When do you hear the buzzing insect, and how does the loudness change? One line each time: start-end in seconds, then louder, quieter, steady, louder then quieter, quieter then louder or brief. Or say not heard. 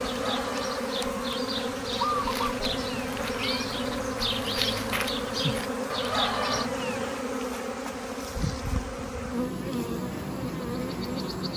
0.0-11.5 steady.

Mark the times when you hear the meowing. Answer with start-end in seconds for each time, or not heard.
2.6-3.7, 6.5-7.2.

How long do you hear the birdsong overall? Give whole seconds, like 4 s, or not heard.
7 s.